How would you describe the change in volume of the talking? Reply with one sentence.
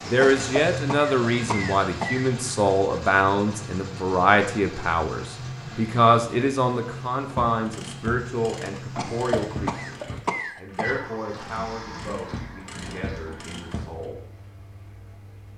The volume of the talking goes down.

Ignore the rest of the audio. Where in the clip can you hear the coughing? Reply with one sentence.
The coughing can be heard from 0.2 to 2.2 s and from 8.9 to 11.0 s.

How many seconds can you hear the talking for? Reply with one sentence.
You can hear the talking for 14 seconds altogether.